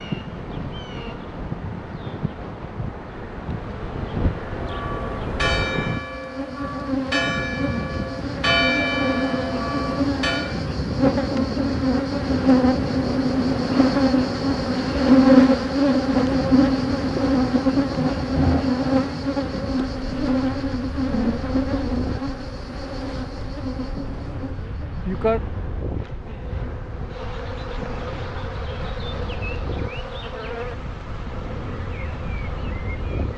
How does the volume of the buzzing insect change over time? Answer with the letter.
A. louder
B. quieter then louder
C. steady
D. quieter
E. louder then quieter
E.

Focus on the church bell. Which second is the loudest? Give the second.
9 s.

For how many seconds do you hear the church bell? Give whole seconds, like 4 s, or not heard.
6 s.